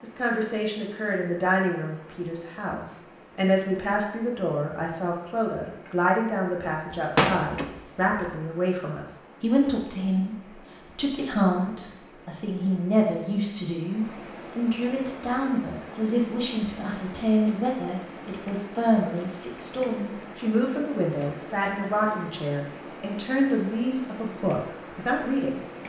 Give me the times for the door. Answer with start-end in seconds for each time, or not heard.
7.2-8.4.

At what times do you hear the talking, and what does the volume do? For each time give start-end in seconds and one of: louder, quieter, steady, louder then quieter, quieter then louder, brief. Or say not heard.
0.0-25.6 steady.